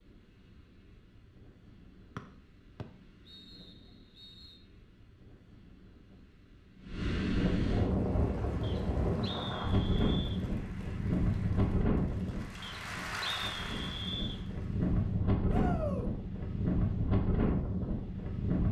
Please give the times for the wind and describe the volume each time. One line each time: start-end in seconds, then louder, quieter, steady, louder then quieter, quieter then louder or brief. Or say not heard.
0.0-18.6 louder.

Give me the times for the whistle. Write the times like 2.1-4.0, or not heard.
2.1-4.5, 8.6-10.4, 12.6-14.4.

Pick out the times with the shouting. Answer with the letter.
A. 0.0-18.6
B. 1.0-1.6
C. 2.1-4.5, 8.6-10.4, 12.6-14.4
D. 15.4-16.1
D.